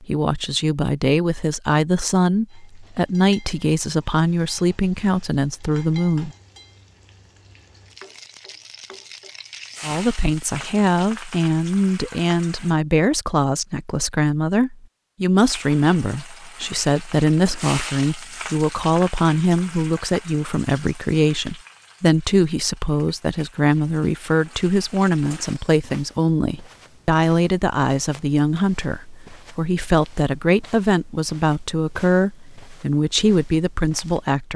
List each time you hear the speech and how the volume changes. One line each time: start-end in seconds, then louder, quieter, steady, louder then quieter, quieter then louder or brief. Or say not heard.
0.0-6.3 steady
9.8-34.5 steady.